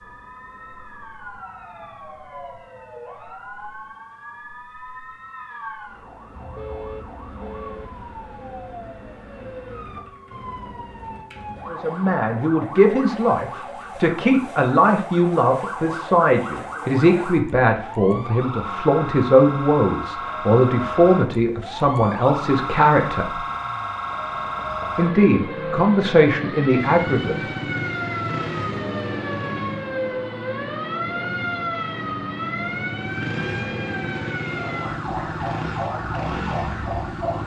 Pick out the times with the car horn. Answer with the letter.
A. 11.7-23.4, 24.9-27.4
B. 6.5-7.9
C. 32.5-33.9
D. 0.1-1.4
B.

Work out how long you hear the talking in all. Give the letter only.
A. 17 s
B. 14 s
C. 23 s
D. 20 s
B.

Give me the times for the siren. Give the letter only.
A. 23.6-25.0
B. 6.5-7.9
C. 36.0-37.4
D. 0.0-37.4
D.